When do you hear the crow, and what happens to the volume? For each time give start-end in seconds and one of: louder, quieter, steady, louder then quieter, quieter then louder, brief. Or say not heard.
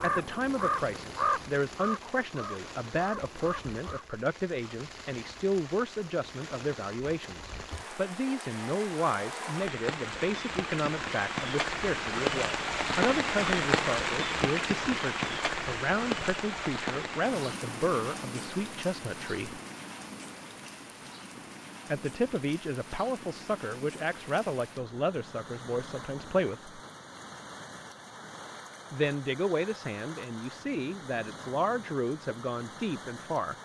0.0-4.0 quieter.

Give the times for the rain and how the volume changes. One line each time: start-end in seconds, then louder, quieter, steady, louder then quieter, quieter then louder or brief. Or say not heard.
0.0-33.6 louder then quieter.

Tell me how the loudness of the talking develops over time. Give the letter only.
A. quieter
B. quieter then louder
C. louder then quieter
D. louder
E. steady
E.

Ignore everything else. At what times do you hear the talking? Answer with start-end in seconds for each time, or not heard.
0.0-19.6, 21.9-26.8, 28.9-33.5.